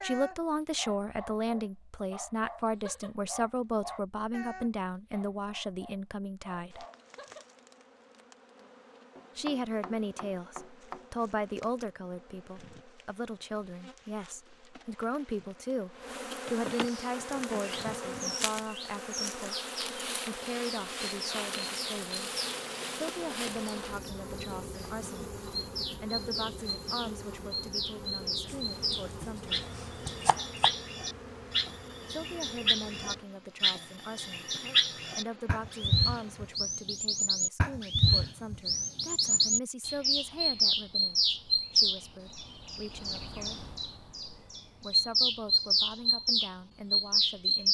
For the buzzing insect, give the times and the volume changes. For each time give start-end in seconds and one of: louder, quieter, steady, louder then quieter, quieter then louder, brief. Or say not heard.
6.7-36.6 louder then quieter.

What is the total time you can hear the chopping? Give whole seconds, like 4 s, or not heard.
4 s.